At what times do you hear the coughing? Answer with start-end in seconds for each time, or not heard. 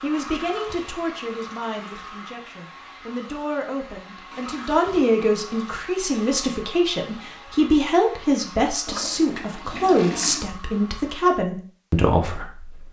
not heard.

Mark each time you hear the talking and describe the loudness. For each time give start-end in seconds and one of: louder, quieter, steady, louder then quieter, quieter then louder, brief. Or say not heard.
0.0-12.8 louder.